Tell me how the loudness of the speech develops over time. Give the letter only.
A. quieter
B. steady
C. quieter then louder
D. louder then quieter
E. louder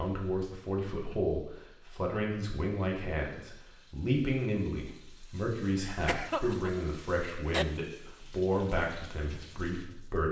B.